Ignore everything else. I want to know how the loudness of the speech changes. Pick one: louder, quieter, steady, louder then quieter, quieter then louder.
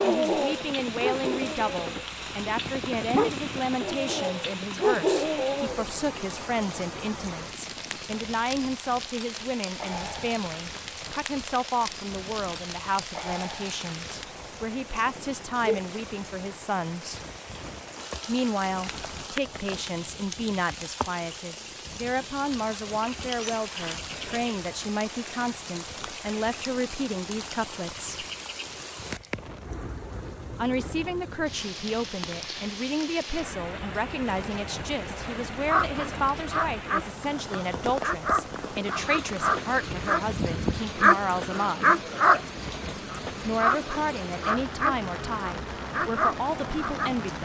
steady.